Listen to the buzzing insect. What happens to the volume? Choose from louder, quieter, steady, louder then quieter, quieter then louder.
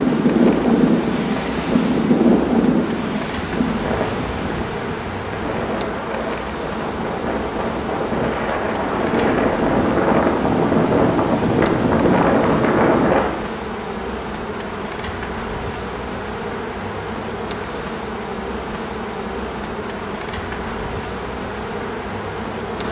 steady.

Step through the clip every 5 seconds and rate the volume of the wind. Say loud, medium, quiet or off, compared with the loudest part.
loud, medium, loud, off, off.